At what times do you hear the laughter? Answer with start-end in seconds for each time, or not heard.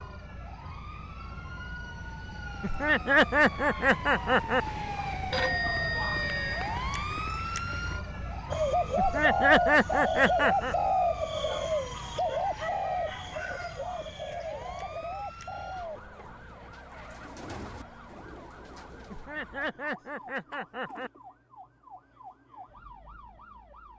2.6-4.6, 8.9-10.8, 19.1-21.1.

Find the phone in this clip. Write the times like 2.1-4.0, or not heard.
5.3-6.8.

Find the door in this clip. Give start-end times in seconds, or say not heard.
not heard.